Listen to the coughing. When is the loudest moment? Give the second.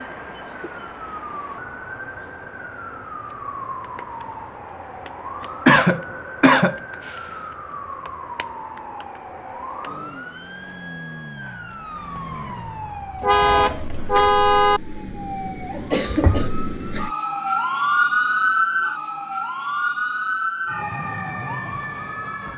6 s.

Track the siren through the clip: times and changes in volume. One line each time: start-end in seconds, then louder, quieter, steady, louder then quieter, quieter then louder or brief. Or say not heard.
0.0-22.5 louder.